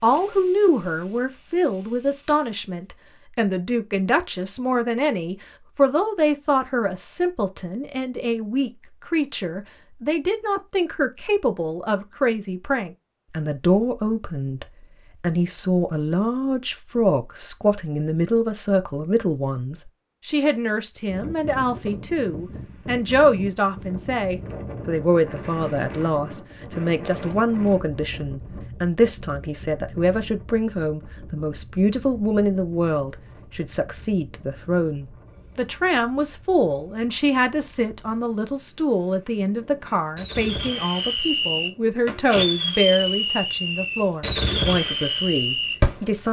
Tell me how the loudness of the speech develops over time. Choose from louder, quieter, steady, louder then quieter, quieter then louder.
steady.